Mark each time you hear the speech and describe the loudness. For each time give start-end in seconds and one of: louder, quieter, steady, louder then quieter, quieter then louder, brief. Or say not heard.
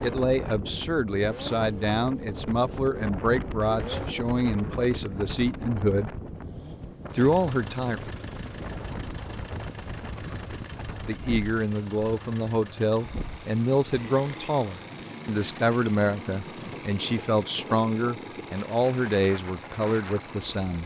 0.0-6.1 steady
7.2-8.0 brief
11.1-20.8 steady.